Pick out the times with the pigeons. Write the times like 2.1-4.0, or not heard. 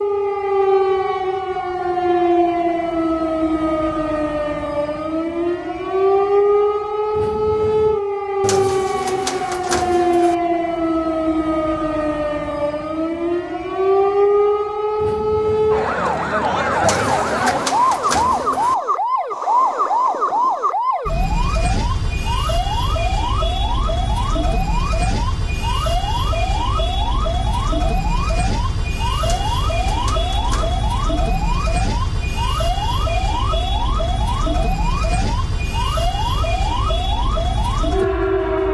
8.4-10.3, 16.8-18.8, 29.2-30.9.